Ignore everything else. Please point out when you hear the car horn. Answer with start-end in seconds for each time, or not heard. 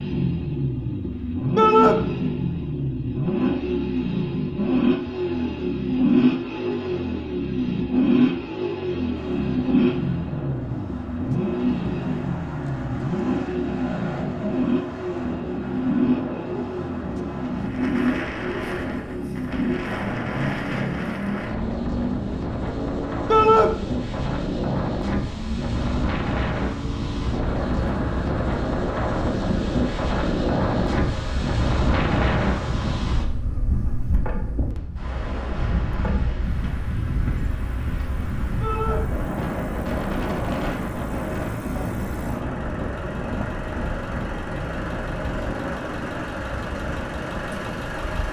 not heard.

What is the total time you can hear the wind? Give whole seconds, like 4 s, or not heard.
39 s.